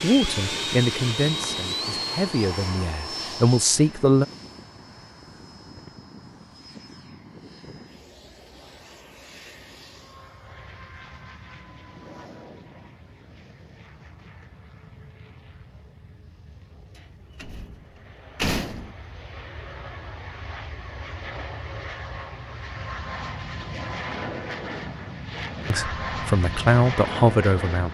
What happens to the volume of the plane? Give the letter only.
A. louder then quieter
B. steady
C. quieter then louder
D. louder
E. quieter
C.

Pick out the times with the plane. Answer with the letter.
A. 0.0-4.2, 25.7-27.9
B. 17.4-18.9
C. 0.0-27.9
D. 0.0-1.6
C.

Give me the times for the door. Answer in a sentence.
You can hear the door from 17.4 to 18.9 s.